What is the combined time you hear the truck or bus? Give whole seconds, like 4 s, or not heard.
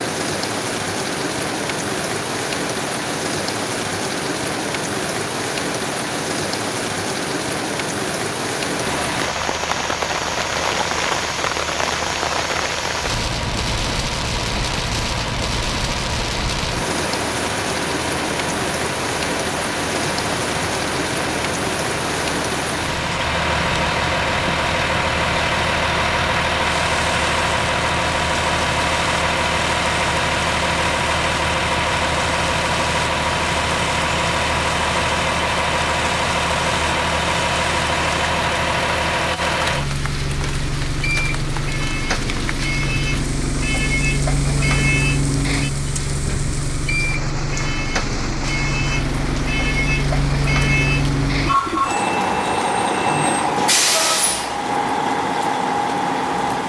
48 s.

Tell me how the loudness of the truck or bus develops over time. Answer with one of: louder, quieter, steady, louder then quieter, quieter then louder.
louder.